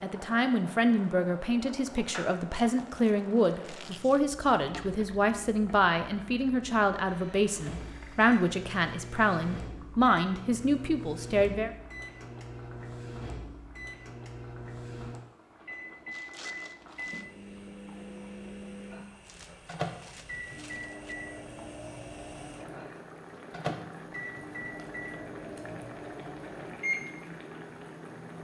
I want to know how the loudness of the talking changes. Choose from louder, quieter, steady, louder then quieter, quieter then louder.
steady.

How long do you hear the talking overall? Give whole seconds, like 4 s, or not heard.
12 s.